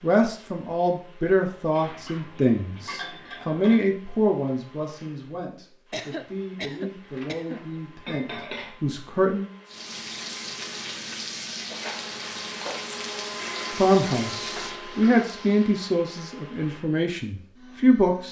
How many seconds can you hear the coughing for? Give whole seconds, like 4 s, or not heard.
2 s.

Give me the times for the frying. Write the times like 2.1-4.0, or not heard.
9.7-15.8.